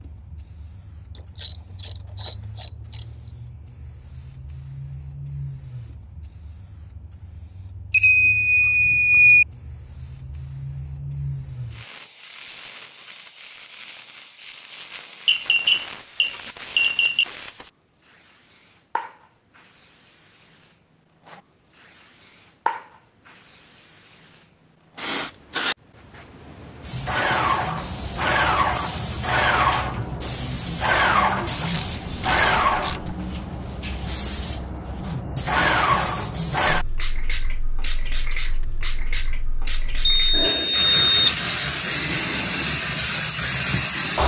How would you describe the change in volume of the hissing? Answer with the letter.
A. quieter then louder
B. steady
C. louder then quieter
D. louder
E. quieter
D.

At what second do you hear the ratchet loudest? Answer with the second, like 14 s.
32 s.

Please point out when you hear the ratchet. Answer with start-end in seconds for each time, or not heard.
1.1-3.0, 31.6-33.1.